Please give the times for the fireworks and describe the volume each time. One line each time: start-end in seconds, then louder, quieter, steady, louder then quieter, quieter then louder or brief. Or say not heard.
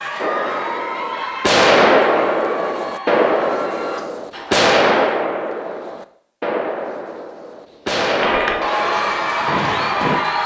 0.1-10.2 quieter.